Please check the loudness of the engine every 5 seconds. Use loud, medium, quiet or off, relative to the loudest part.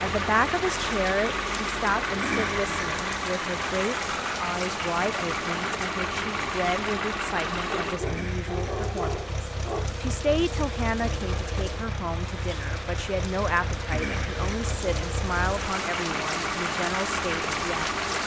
loud, loud, medium, loud.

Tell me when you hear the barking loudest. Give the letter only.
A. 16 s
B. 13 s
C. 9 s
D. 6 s
C.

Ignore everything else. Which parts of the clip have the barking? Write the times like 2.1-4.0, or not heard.
7.7-9.9.